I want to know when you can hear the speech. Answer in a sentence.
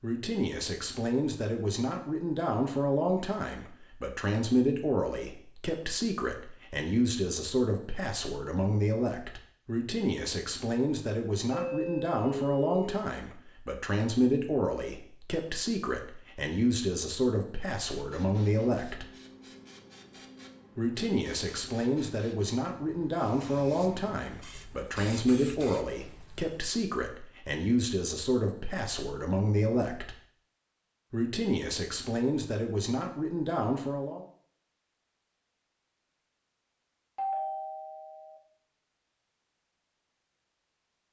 You can hear the speech from 0.0 to 19.1 s, from 20.8 to 30.1 s and from 31.1 to 34.2 s.